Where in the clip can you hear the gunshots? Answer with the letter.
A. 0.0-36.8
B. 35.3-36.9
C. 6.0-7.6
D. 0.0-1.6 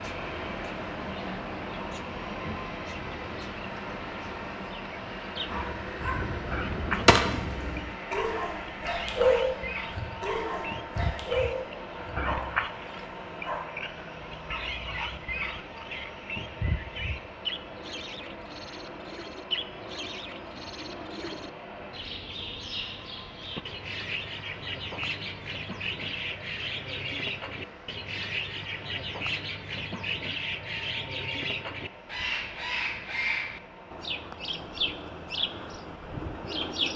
C.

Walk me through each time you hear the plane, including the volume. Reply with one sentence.
You can hear the plane from 0.0 to 36.8 s, getting quieter.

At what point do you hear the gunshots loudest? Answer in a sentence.
The volume of the gunshots peaks at 7 seconds.